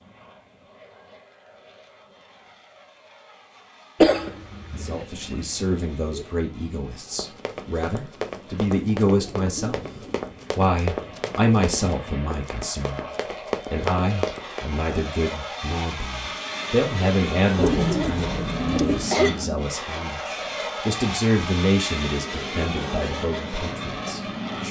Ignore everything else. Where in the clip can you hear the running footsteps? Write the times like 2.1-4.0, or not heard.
7.1-14.7.